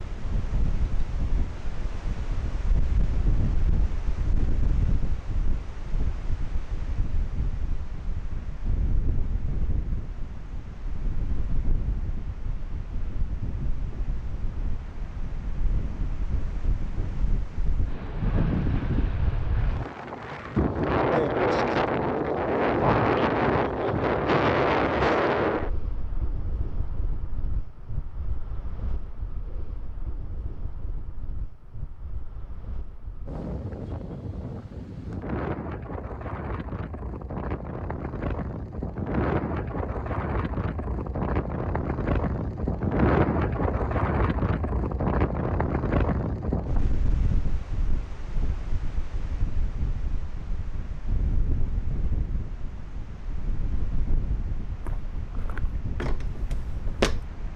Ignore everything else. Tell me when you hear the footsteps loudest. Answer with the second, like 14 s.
57 s.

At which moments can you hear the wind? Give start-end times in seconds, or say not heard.
0.0-57.5.